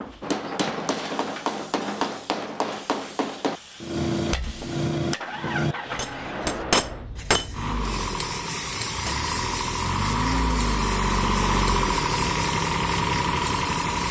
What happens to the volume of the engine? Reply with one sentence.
The loudness of the engine goes up.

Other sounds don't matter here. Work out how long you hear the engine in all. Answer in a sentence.
You can hear the engine for 10 seconds altogether.